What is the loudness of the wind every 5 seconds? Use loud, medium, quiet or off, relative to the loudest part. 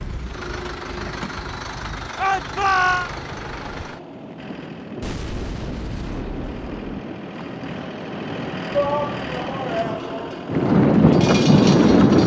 quiet, quiet, loud.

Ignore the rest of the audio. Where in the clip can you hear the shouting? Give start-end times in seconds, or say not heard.
2.1-3.1, 8.7-10.3.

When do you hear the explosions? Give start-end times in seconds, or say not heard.
5.0-6.9.